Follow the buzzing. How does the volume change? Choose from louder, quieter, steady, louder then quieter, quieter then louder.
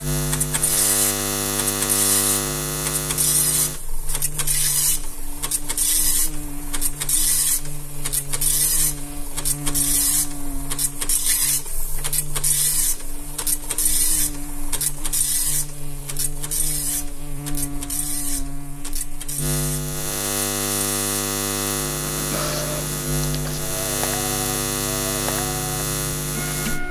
quieter then louder.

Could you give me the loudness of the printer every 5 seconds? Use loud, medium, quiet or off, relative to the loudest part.
loud, loud, loud, medium, loud, loud.